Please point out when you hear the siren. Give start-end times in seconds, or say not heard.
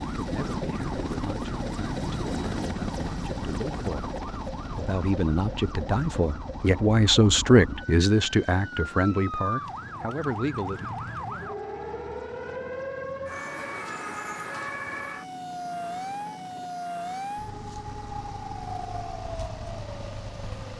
0.0-20.7.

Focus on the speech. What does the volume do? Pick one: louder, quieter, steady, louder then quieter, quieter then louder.
louder then quieter.